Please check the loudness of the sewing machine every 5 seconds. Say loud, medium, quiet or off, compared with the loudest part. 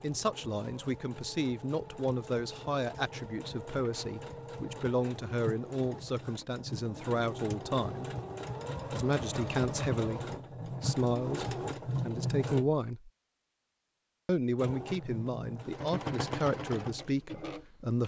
medium, loud, loud, loud.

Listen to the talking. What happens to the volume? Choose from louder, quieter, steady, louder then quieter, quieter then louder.
steady.